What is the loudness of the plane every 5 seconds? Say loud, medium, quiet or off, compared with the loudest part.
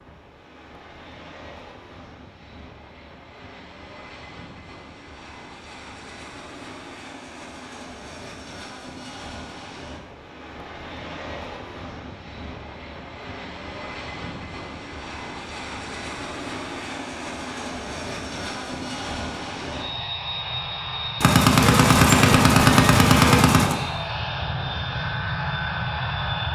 quiet, quiet, medium, medium, loud, loud.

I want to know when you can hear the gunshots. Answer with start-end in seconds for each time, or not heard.
21.2-23.8.